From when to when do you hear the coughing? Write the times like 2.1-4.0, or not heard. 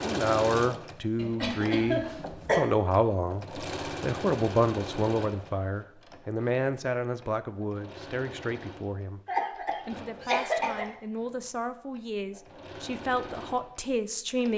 1.1-2.6, 9.2-10.9.